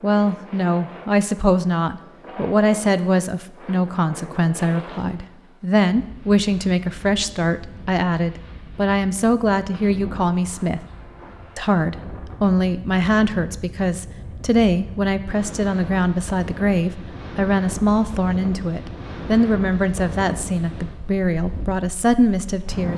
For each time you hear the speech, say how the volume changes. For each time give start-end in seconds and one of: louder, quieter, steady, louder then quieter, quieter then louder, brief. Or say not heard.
0.0-10.8 steady
11.6-22.9 steady.